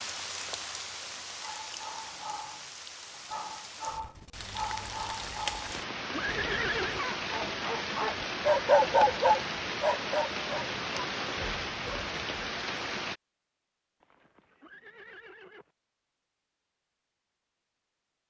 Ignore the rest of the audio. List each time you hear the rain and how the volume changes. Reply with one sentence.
You can hear the rain from 0.0 to 13.2 s, getting louder.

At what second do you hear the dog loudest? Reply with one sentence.
The loudest moment of the dog is at 9 seconds.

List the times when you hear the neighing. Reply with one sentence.
You can hear the neighing from 5.5 to 7.0 s and from 14.0 to 15.7 s.